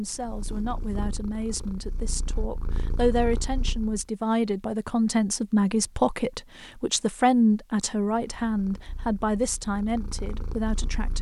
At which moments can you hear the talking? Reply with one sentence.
You can hear the talking from 0.0 to 11.1 s.